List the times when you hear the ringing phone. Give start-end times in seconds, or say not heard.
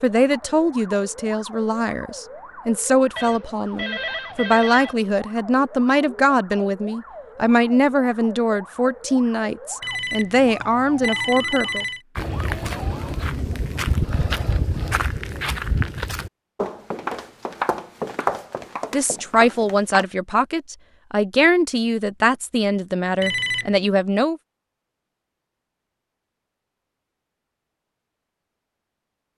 3.1-5.0, 9.8-12.0, 23.2-23.8.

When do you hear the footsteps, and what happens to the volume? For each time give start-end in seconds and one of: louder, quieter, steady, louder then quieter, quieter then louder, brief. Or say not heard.
12.2-20.1 steady.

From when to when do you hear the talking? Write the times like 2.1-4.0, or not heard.
0.0-11.8, 18.9-24.4.